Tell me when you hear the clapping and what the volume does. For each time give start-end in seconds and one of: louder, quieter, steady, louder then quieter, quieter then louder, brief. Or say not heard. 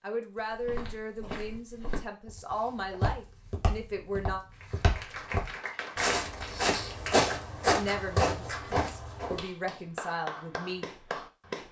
4.5-11.6 quieter then louder.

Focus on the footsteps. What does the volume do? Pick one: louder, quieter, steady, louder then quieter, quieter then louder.
louder.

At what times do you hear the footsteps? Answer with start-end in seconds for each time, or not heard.
0.3-9.4.